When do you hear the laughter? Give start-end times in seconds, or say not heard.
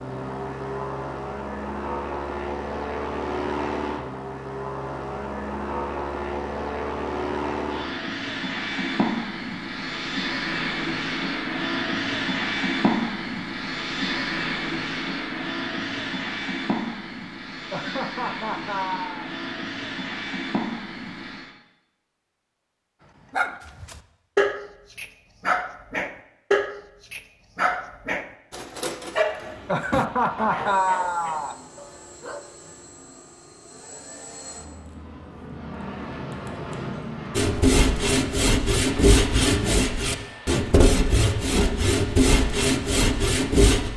17.7-19.3, 29.6-31.6.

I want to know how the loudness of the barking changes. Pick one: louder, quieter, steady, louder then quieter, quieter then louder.
quieter.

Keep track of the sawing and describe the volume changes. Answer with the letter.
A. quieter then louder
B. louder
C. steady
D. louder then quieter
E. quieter
C.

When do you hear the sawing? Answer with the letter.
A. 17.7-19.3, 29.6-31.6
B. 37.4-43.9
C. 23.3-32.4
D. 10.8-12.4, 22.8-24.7
B.